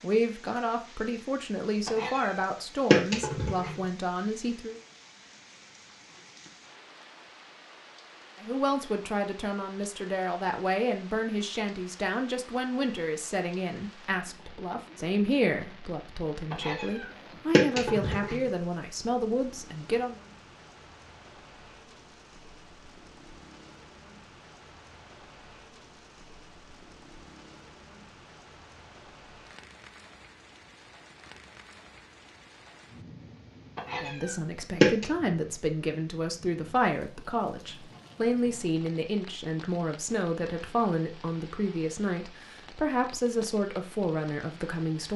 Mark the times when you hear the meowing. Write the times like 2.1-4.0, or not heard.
1.9-3.8, 16.5-18.4, 33.8-35.0.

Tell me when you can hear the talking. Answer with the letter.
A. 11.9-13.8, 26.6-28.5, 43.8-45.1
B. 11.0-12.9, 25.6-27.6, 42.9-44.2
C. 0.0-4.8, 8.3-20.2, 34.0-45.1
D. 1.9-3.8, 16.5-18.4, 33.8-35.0
C.